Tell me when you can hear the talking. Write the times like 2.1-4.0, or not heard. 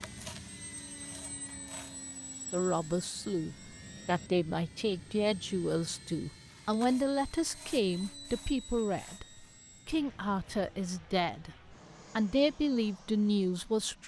2.5-14.0.